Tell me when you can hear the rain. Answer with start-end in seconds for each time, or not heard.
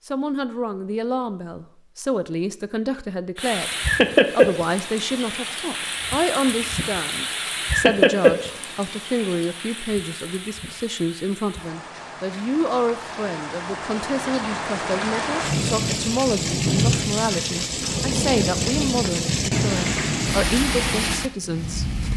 3.4-22.1.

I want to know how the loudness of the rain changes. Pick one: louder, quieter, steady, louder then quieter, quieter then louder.
quieter then louder.